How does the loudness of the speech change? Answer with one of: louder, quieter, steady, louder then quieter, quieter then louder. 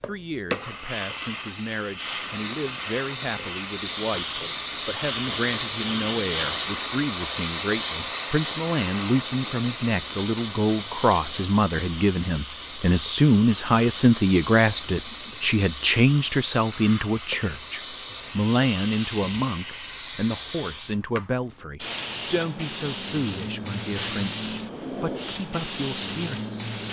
louder then quieter.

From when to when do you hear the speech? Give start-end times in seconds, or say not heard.
0.0-26.6.